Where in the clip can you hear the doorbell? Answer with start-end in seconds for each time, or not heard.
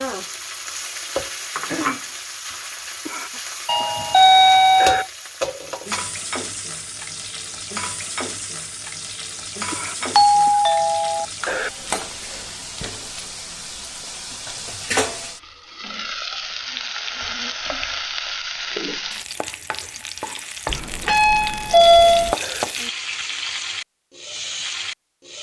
3.6-5.0, 10.2-11.2, 20.6-22.4.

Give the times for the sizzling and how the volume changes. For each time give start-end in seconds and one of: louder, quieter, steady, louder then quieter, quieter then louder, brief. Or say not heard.
0.0-25.3 steady.